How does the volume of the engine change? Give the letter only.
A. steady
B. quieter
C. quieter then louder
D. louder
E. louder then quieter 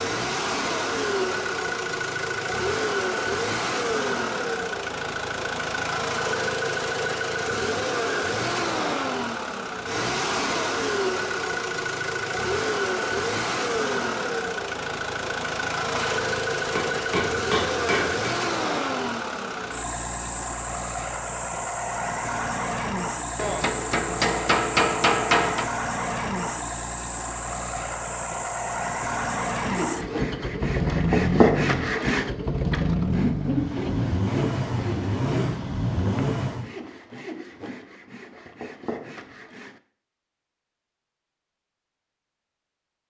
A.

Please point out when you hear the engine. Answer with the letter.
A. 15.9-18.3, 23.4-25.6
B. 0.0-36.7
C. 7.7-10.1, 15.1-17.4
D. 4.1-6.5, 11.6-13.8
B.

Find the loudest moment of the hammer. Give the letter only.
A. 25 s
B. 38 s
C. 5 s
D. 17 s
A.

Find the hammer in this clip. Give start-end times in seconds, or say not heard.
15.9-18.3, 23.4-25.6.